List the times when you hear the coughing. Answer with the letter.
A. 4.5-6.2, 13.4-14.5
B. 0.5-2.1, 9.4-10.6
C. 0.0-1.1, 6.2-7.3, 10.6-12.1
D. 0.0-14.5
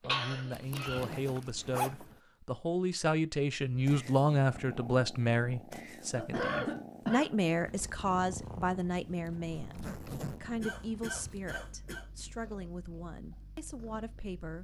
C.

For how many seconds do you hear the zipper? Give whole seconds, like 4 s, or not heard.
3 s.